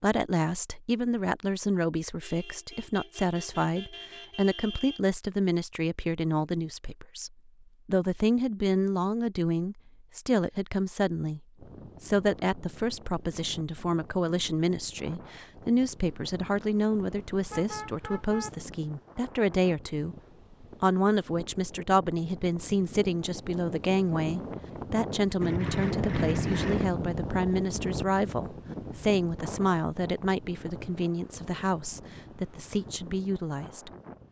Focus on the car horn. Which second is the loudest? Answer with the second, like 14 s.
26 s.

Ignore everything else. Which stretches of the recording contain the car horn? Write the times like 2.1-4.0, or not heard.
2.2-5.0, 17.5-18.5, 25.4-26.9.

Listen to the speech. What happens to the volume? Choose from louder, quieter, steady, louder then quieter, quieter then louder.
steady.